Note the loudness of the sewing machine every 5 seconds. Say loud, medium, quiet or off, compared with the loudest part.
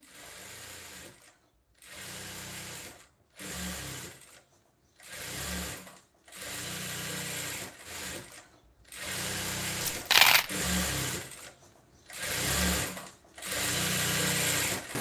quiet, medium, loud.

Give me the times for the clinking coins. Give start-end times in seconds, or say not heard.
9.8-10.5.